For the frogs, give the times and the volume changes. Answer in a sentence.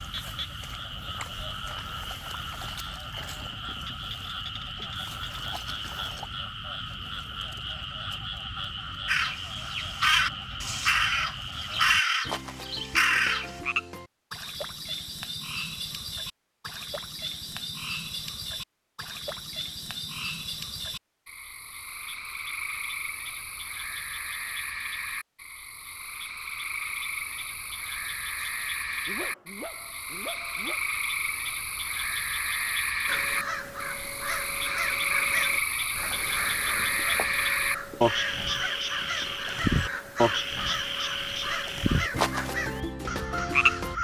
You can hear the frogs from 0.0 to 43.9 s, getting louder.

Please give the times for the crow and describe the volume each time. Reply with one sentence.
The crow can be heard from 9.1 to 13.6 s, at a steady volume; and from 33.0 to 43.9 s, at a steady volume.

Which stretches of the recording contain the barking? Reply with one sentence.
You can hear the barking from 28.4 to 30.9 s.